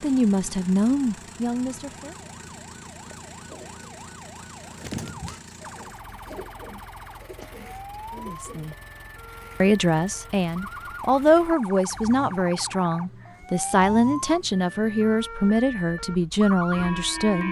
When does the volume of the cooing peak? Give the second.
5 s.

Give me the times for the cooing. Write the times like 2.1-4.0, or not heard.
3.0-8.8.